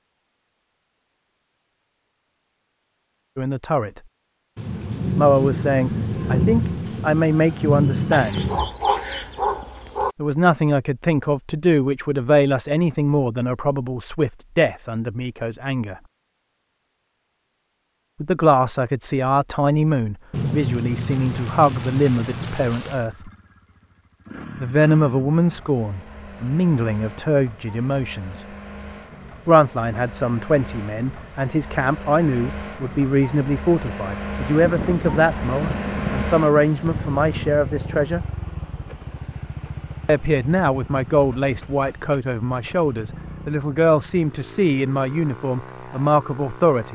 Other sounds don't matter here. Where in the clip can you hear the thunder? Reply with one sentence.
The thunder can be heard from 4.5 to 8.7 s, from 20.3 to 23.1 s and from 34.5 to 37.5 s.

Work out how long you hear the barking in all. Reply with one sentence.
You can hear the barking for 2 seconds altogether.